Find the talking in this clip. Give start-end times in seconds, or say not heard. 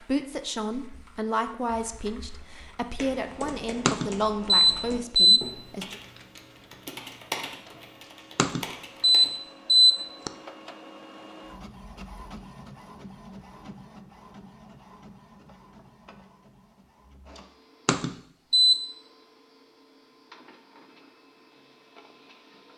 0.0-6.0.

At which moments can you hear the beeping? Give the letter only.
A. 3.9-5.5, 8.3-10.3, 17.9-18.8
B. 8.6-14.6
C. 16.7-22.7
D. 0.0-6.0
A.